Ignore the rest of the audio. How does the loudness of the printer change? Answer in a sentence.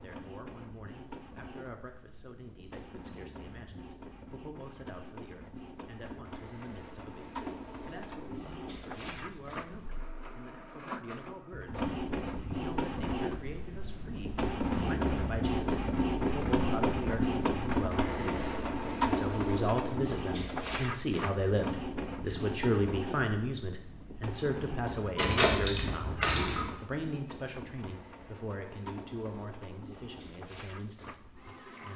The volume of the printer goes up, then down.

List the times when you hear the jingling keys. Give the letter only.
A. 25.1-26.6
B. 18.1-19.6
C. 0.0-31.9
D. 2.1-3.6
A.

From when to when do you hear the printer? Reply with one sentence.
The printer can be heard from 0.0 to 31.9 s.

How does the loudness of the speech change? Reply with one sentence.
The volume of the speech goes up, then down.